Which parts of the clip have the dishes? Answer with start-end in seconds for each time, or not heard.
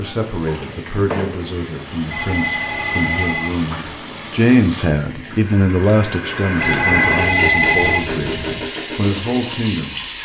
not heard.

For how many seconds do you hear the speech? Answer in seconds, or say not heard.
10 s.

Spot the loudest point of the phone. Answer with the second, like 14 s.
8 s.